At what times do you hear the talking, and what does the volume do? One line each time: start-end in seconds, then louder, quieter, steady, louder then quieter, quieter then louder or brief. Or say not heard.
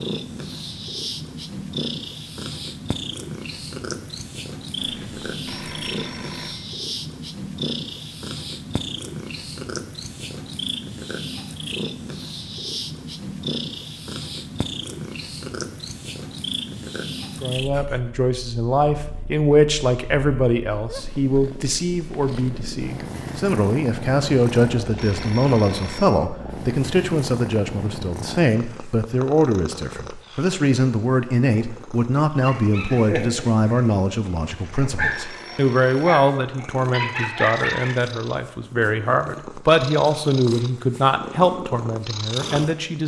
17.4-43.0 steady.